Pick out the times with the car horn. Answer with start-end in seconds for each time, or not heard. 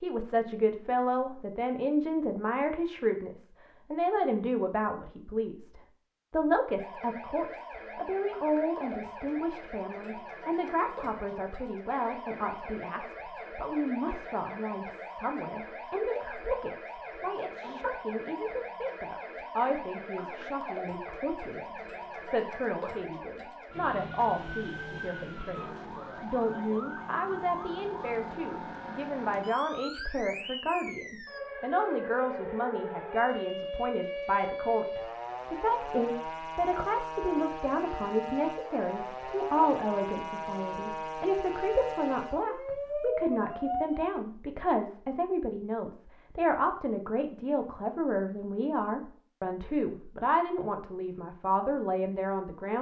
not heard.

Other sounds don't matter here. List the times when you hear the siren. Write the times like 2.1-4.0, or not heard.
6.8-44.2.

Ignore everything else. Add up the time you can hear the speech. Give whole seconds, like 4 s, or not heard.
53 s.